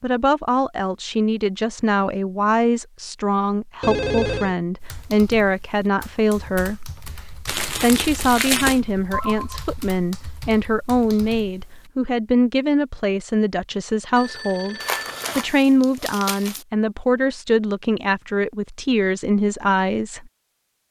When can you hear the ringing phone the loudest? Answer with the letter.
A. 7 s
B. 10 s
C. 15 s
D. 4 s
D.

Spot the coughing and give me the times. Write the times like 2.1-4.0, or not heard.
not heard.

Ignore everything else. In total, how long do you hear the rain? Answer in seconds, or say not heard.
not heard.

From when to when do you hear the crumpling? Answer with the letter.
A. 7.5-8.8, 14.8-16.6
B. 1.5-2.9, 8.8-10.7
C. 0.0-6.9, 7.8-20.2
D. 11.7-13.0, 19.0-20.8
A.